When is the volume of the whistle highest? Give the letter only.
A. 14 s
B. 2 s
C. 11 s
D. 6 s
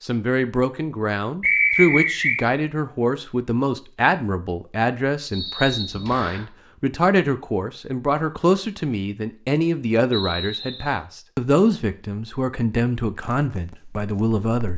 B.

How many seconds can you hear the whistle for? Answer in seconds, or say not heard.
3 s.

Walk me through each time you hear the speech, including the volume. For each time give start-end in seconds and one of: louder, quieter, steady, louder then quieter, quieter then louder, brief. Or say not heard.
0.0-14.7 steady.